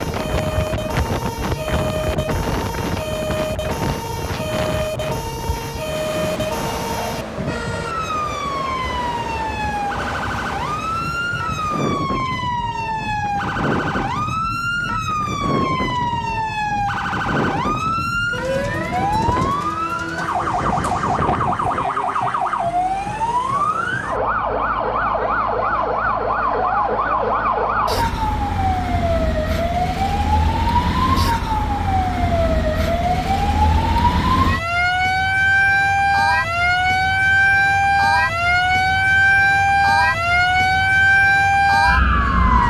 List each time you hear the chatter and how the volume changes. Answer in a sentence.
The chatter can't be heard in this clip.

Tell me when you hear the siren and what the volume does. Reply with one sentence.
The siren can be heard from 0.0 to 42.6 s, getting louder.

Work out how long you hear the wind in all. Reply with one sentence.
The wind can be heard for 22 seconds in total.